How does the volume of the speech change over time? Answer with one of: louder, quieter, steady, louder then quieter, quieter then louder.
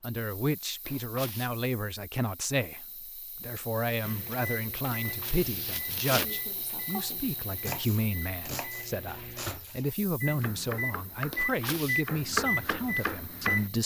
steady.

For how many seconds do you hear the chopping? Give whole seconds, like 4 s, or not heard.
6 s.